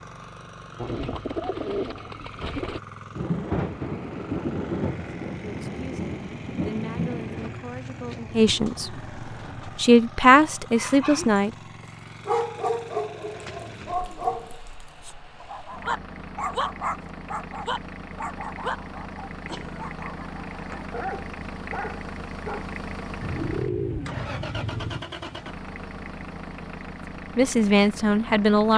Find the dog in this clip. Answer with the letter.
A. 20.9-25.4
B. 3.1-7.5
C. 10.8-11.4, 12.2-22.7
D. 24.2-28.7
C.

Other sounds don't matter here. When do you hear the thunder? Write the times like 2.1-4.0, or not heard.
3.1-7.5.